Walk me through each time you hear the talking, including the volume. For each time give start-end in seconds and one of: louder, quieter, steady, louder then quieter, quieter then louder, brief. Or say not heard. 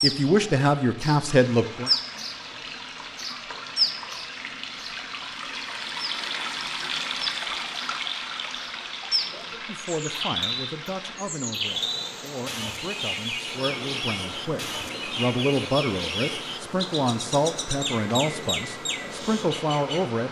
0.0-1.9 brief
9.5-20.2 louder.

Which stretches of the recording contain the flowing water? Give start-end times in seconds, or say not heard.
0.0-20.2.